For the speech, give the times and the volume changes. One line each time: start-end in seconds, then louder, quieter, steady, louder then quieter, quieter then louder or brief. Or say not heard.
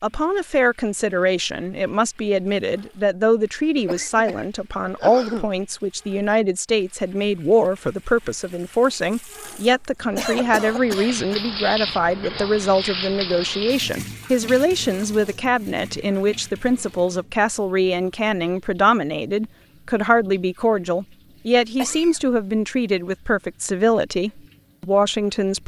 0.0-25.6 steady.